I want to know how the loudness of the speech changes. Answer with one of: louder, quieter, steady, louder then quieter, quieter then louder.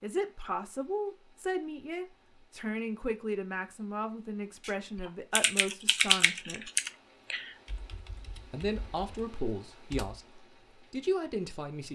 steady.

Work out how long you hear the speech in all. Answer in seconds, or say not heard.
10 s.